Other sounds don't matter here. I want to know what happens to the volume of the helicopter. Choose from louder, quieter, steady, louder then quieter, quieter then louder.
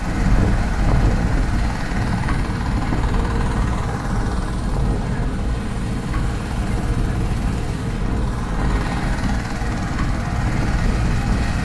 steady.